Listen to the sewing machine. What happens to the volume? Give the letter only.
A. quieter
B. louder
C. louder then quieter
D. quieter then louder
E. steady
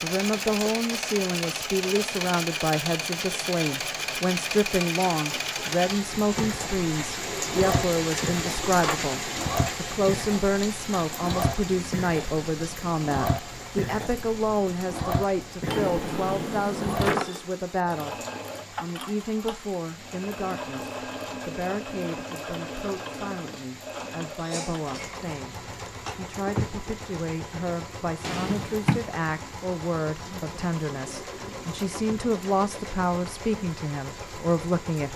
A.